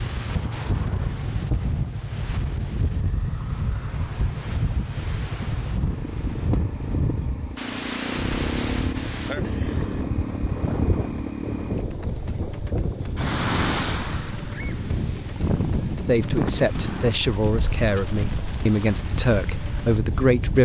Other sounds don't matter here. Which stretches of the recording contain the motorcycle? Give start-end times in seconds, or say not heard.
0.0-20.6.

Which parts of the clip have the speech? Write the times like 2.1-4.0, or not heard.
16.1-20.6.